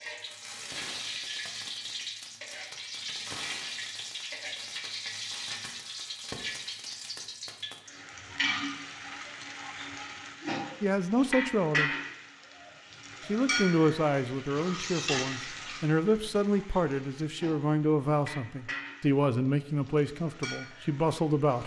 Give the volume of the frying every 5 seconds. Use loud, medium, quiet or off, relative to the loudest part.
loud, loud, loud, medium, medium.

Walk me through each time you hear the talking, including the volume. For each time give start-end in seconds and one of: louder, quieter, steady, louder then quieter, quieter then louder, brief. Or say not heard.
10.8-11.9 brief
13.2-21.6 steady.